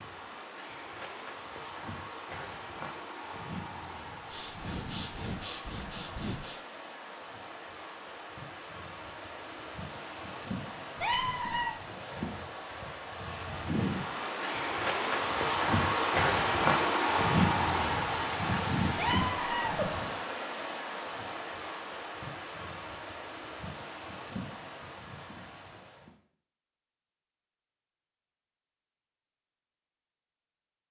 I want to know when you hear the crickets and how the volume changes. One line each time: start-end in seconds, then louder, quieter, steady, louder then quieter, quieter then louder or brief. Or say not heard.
0.0-26.1 louder then quieter.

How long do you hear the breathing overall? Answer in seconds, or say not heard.
2 s.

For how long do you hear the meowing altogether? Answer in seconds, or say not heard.
2 s.